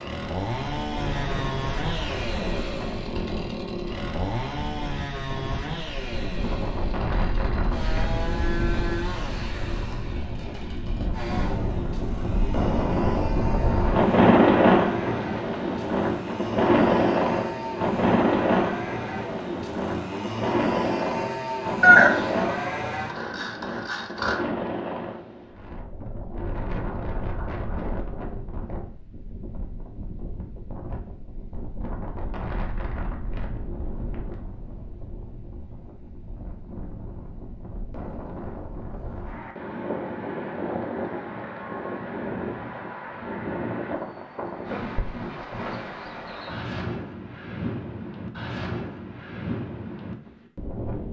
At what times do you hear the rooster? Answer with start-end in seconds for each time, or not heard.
21.8-22.9.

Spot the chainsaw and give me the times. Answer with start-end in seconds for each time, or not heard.
0.0-24.4.